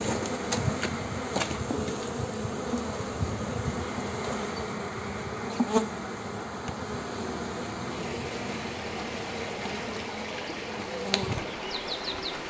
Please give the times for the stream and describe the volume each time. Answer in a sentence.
You can hear the stream from 0.0 to 12.4 s, at a steady volume.